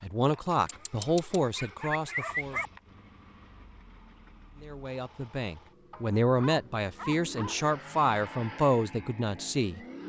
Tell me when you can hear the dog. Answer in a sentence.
You can hear the dog from 0.7 to 2.7 s and from 5.9 to 7.6 s.